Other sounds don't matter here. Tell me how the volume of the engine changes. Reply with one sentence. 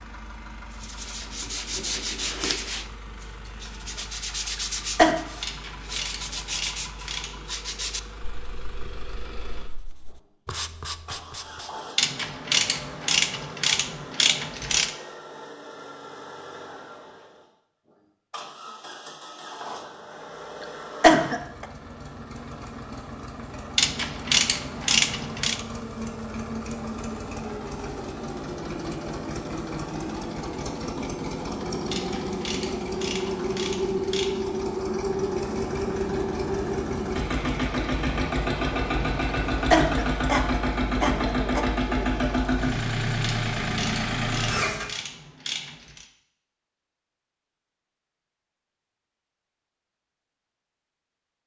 The loudness of the engine goes up.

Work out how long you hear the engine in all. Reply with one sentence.
The engine can be heard for 45 seconds in total.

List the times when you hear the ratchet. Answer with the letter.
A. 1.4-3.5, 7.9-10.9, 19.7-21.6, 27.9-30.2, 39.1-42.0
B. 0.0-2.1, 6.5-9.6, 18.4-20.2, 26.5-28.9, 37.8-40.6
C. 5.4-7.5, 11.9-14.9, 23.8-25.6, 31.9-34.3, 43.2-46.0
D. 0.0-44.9
C.